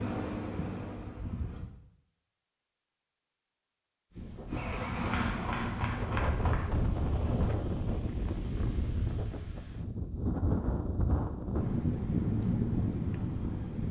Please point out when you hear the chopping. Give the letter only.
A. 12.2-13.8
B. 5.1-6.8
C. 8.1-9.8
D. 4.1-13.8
B.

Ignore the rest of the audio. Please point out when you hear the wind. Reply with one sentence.
You can hear the wind from 4.1 to 13.8 s.